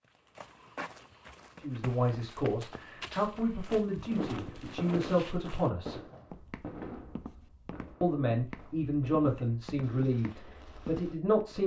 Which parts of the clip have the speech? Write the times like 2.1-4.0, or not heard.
1.6-6.0, 8.0-11.6.